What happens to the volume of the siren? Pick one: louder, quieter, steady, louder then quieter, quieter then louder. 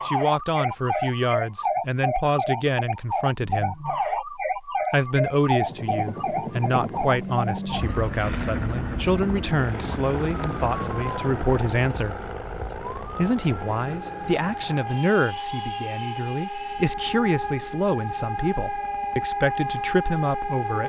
quieter then louder.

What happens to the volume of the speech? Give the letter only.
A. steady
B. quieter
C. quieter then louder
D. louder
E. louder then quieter
A.